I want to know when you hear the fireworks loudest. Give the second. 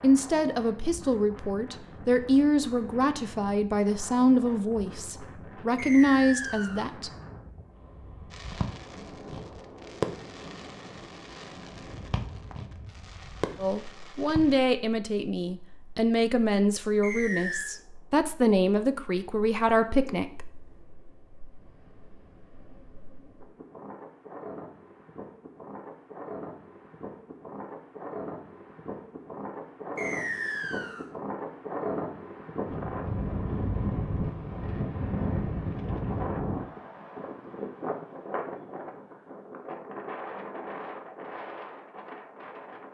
10 s.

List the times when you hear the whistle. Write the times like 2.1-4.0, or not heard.
5.8-6.9, 17.0-17.7, 29.9-31.1.